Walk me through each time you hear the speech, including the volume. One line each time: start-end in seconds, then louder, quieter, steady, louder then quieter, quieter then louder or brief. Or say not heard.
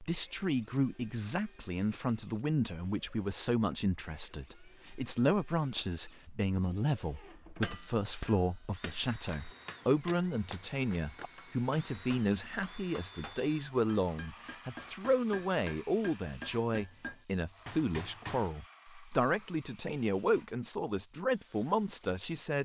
0.0-22.5 steady.